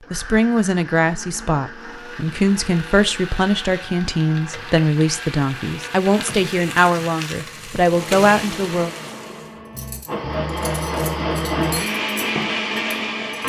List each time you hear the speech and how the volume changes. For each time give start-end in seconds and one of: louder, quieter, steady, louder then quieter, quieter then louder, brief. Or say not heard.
0.1-8.9 steady.